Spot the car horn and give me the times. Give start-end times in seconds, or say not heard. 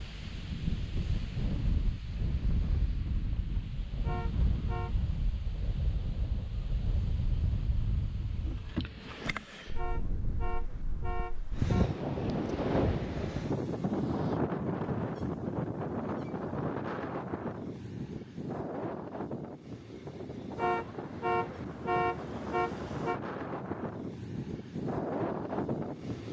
4.0-5.0, 9.8-12.0, 20.6-23.2.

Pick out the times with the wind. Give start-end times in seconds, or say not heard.
0.0-26.2.